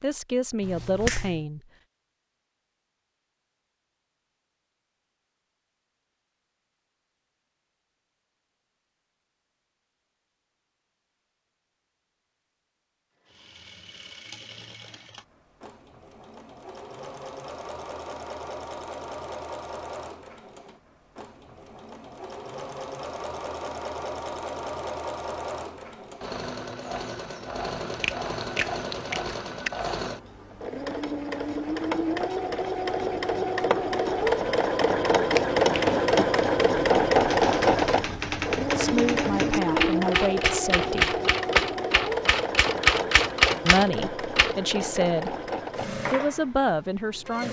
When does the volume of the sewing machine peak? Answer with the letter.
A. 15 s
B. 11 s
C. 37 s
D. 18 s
C.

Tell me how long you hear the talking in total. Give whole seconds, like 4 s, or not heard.
7 s.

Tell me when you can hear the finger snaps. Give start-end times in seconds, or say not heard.
0.6-1.4, 27.9-29.7.